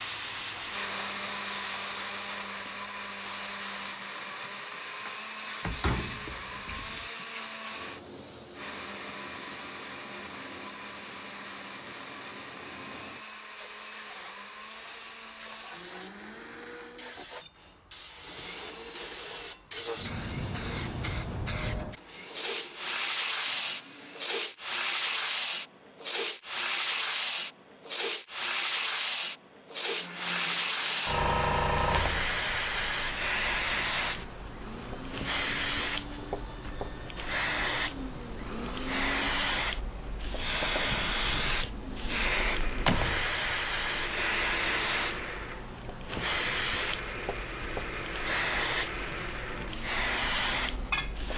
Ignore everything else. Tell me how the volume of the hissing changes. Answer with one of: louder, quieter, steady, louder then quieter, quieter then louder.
louder.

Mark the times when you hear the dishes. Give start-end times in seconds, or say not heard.
not heard.